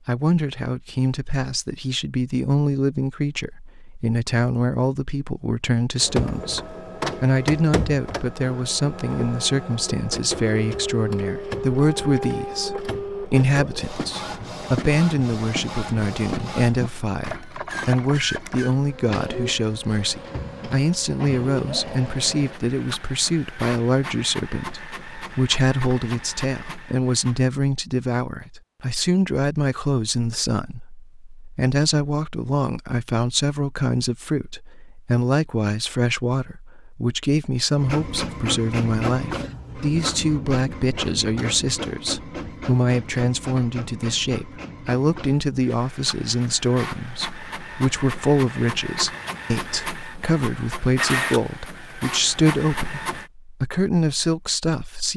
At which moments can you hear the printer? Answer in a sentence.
You can hear the printer from 6.0 to 27.4 s and from 37.8 to 53.3 s.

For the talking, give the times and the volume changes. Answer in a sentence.
The talking can be heard from 0.1 to 55.1 s, at a steady volume.